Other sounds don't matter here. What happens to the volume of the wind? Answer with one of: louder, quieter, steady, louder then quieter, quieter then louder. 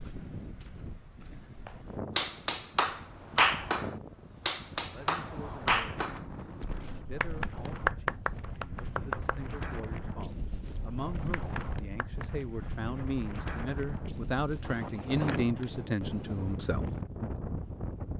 louder.